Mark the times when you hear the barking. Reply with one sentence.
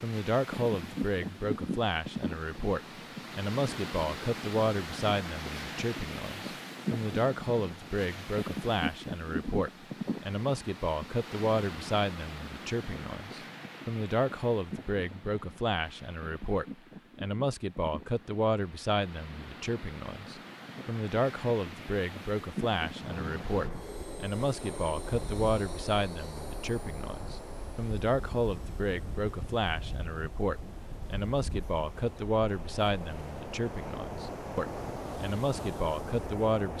You can't hear the barking here.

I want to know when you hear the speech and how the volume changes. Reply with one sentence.
You can hear the speech from 0.0 to 36.7 s, at a steady volume.